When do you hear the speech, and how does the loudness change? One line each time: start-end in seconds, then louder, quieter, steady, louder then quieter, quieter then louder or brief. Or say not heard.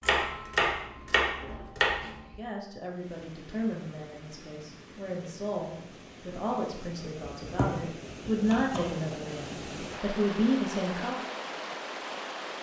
2.3-11.2 louder.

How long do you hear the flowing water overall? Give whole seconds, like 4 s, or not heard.
10 s.